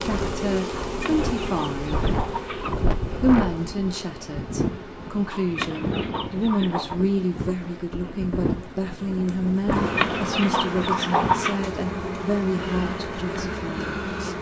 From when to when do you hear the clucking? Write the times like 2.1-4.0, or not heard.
0.8-2.8, 5.3-7.0, 9.7-11.6.